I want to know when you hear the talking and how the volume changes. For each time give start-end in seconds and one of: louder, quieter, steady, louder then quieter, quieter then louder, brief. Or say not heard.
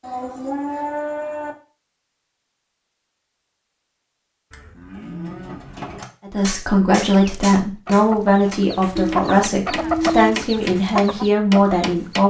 6.2-12.2 steady.